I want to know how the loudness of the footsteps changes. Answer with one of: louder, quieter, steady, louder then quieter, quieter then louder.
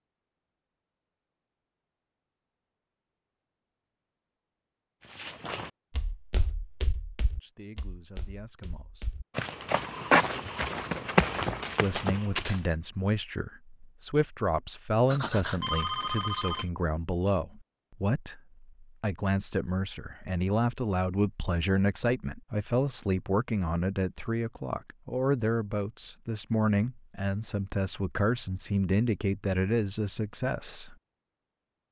quieter then louder.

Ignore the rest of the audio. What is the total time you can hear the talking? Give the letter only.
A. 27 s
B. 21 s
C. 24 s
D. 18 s
B.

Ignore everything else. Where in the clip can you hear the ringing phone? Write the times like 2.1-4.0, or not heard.
15.1-16.7.